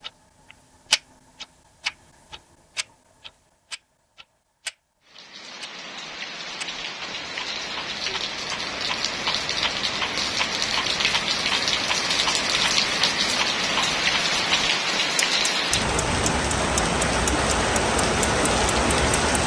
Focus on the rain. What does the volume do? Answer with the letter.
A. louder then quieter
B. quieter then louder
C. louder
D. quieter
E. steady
C.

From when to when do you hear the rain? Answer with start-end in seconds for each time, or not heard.
5.0-19.4.